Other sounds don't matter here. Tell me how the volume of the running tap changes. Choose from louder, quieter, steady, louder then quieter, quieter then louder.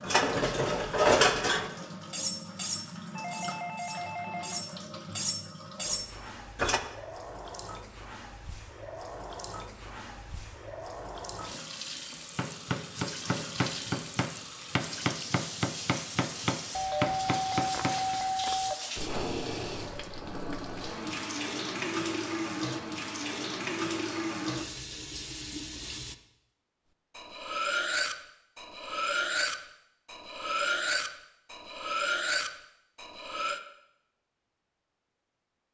louder.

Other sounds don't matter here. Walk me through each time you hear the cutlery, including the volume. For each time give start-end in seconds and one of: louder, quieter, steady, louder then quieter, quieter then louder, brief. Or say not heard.
0.0-6.8 quieter then louder
27.1-33.6 steady.